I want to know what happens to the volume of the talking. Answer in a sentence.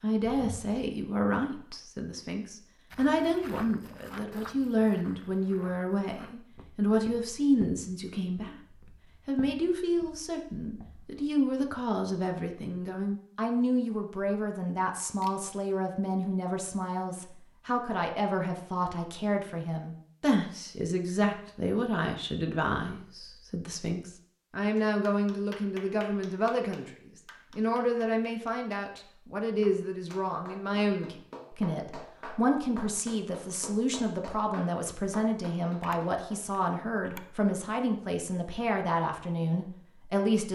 The volume of the talking stays about the same.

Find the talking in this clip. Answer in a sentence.
The talking can be heard from 0.0 to 8.6 s, from 9.2 to 26.9 s and from 27.6 to 40.5 s.